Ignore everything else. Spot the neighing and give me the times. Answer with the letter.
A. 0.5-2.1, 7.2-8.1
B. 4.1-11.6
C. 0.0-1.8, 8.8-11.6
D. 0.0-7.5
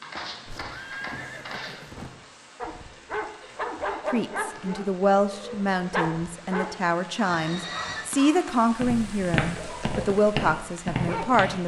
A.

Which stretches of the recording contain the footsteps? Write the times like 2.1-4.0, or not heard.
0.0-1.8, 8.8-11.6.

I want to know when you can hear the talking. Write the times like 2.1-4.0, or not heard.
4.1-11.6.